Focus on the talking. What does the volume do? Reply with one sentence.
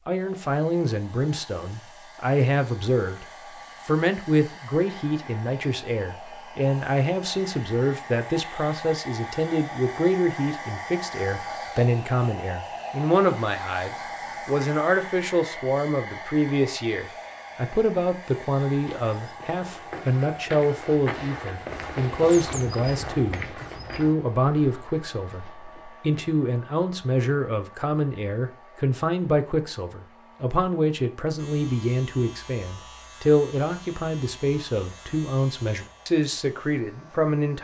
The loudness of the talking stays about the same.